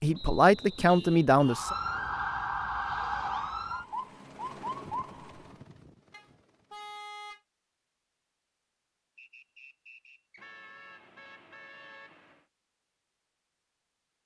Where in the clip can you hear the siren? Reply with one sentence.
The siren can be heard from 1.4 to 5.5 s.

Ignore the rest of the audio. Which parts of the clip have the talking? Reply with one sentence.
The talking can be heard from 0.0 to 1.8 s.